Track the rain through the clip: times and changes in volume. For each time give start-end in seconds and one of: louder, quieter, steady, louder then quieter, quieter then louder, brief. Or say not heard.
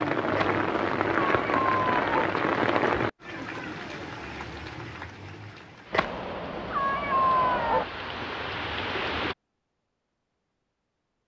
0.0-9.3 quieter then louder.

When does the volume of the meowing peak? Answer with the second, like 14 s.
7 s.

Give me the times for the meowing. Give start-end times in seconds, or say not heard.
0.3-2.3, 5.9-7.8.